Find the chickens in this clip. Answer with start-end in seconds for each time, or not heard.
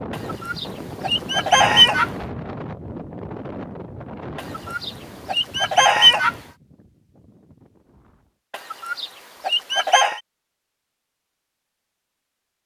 0.1-2.1, 4.3-6.3, 8.5-10.2.